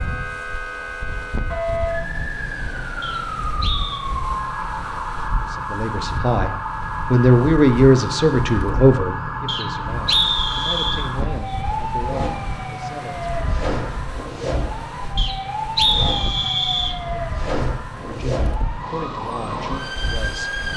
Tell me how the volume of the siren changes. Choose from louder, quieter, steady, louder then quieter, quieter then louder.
steady.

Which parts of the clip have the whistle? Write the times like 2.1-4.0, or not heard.
3.0-4.0, 9.4-11.1, 15.2-16.9.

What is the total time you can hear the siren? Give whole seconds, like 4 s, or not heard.
21 s.